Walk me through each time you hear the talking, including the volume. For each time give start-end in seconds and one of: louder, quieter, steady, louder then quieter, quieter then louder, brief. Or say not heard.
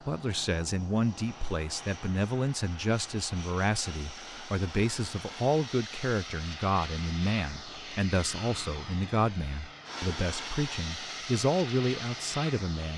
0.1-12.9 steady.